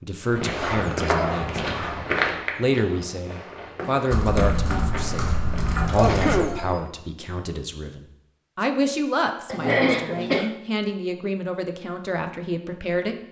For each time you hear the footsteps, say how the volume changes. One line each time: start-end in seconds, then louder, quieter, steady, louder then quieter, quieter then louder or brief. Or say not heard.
0.3-6.8 quieter.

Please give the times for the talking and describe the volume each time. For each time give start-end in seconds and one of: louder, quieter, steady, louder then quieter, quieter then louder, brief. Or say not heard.
0.0-13.2 steady.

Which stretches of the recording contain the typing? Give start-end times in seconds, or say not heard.
4.1-6.4.